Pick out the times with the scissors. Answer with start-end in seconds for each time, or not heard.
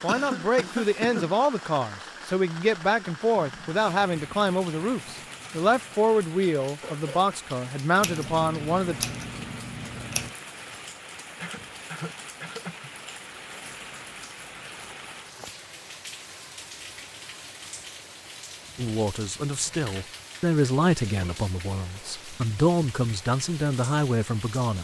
8.0-10.3.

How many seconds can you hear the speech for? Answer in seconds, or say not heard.
15 s.